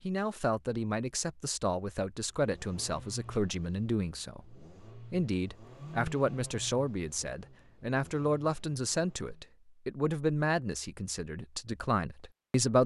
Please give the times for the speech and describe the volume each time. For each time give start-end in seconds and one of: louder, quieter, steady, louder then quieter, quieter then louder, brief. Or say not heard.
0.1-12.8 steady.